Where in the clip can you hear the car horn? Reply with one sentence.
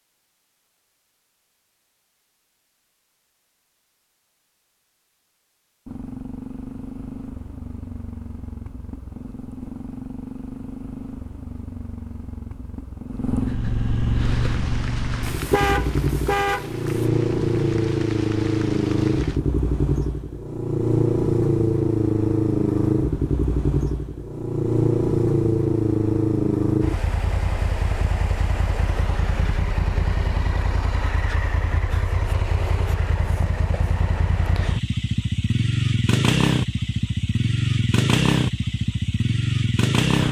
The car horn can be heard from 15.2 to 17.1 s.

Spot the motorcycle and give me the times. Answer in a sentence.
You can hear the motorcycle from 5.8 to 40.2 s.